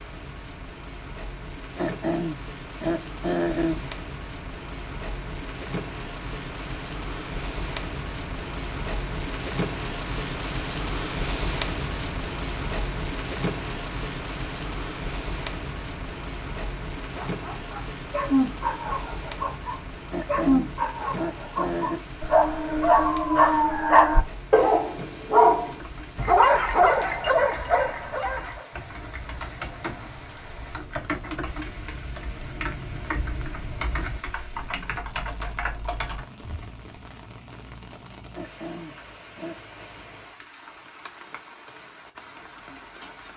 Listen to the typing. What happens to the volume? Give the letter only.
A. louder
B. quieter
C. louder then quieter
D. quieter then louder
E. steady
A.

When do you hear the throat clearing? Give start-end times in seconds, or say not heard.
1.8-3.9, 20.1-22.0, 38.4-39.9.